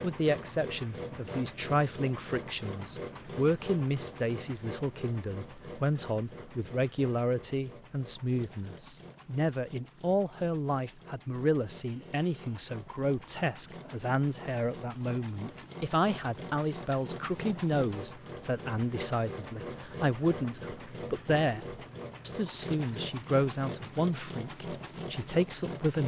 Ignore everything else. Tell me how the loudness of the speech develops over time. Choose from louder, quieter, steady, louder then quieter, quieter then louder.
steady.